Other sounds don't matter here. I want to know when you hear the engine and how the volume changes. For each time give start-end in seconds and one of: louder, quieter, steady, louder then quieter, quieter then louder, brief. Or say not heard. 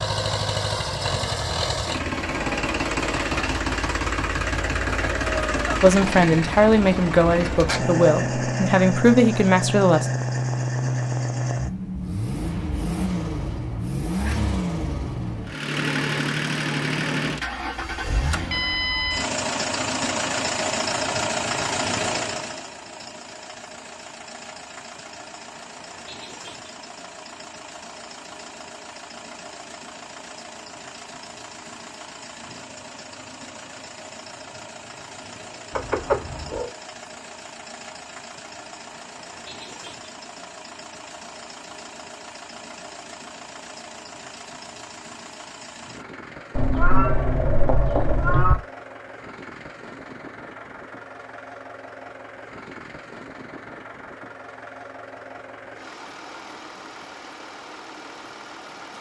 0.0-58.9 quieter.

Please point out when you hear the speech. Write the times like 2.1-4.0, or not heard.
5.8-10.1.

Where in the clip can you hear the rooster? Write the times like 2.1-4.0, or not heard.
not heard.